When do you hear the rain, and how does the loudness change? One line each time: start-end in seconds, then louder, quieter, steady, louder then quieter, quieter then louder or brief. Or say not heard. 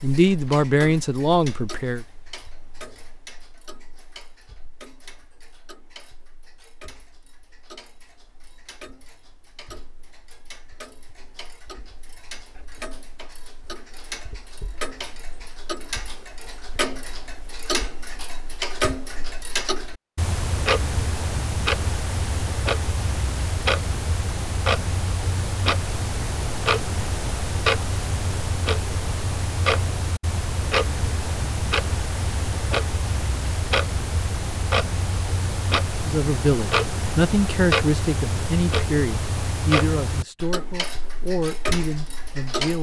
not heard.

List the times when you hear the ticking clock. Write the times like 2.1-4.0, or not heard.
0.0-42.7.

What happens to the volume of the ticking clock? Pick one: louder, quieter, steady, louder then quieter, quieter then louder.
louder.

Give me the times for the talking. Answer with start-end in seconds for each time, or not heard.
0.0-2.0, 36.0-42.7.